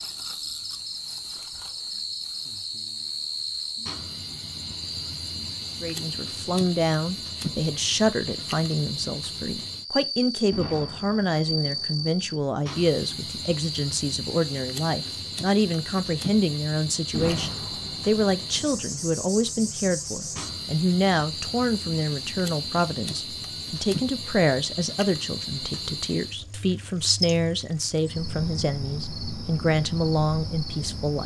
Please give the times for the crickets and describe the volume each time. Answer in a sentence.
The crickets can be heard from 0.0 to 31.2 s, at a steady volume.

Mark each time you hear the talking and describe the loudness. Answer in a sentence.
You can hear the talking from 5.8 to 31.2 s, at a steady volume.